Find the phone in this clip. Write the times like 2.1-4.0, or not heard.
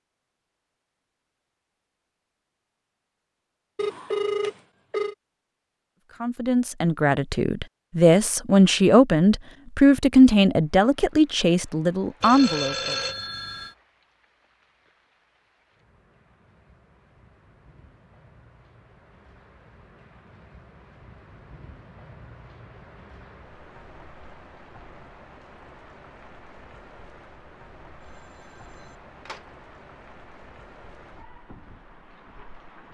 3.8-5.2, 12.2-13.8, 28.0-29.4.